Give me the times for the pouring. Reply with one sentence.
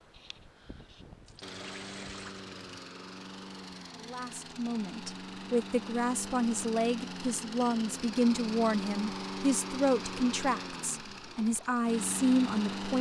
You can hear the pouring from 1.2 to 2.8 s.